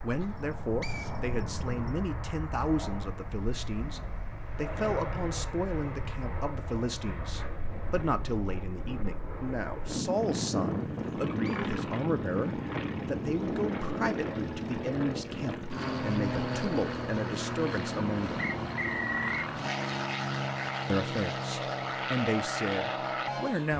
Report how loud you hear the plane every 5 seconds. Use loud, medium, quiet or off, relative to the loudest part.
medium, medium, loud, loud, loud.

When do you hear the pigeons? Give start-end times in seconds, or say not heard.
not heard.